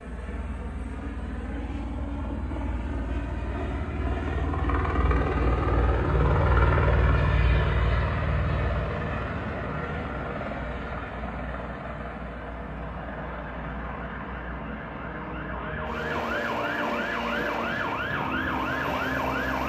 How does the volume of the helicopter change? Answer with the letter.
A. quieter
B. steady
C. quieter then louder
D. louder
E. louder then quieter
E.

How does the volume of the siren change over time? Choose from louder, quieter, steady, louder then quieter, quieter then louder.
louder.